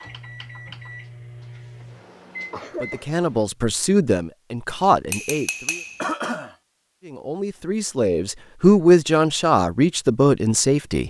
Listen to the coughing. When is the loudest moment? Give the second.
6 s.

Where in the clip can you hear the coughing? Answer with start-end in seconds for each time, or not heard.
2.5-3.1, 6.0-6.5.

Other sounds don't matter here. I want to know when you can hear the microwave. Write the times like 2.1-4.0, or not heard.
0.0-3.5.